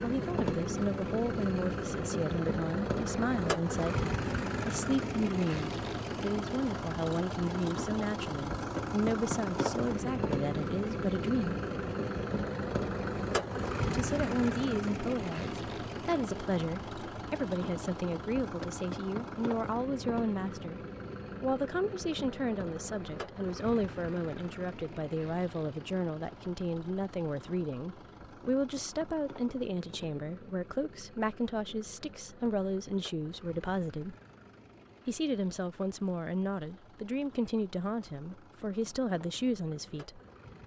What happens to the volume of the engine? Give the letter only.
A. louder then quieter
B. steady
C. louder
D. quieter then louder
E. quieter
E.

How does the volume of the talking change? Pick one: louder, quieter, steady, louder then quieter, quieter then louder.
steady.